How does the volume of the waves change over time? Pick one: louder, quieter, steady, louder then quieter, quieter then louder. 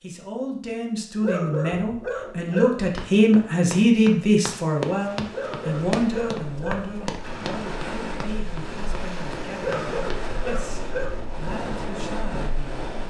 louder.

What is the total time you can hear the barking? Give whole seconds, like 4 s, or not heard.
5 s.